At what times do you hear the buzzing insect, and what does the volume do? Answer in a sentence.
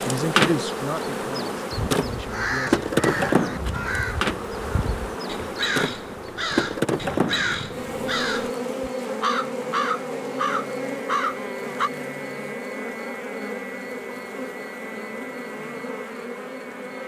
You can hear the buzzing insect from 0.0 to 17.0 s, getting quieter.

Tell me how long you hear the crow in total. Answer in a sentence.
You can hear the crow for 10 seconds altogether.